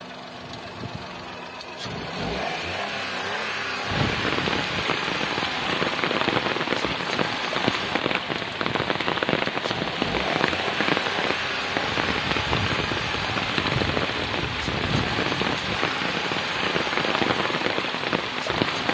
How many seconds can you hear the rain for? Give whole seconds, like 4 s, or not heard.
15 s.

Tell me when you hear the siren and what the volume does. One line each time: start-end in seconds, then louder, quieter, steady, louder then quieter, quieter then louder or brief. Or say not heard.
not heard.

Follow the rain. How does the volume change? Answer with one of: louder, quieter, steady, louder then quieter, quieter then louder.
steady.